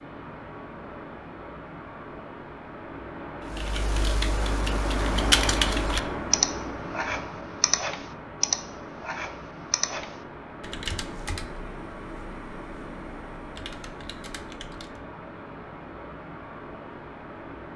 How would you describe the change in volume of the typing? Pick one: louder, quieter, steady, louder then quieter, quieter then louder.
quieter.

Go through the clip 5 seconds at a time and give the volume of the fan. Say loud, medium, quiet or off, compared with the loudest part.
loud, loud, medium, medium.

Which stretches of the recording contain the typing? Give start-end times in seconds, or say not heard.
3.5-15.0.